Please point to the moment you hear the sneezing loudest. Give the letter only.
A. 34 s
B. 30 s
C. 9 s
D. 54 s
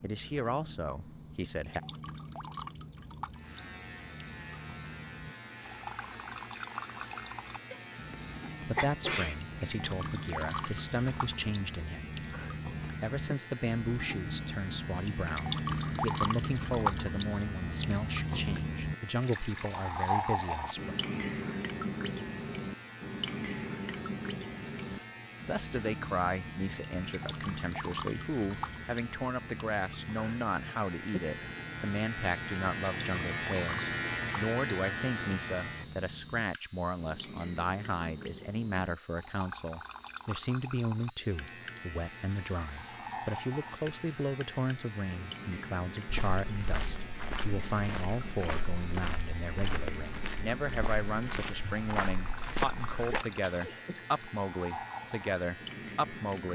C.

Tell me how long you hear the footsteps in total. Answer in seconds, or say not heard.
7 s.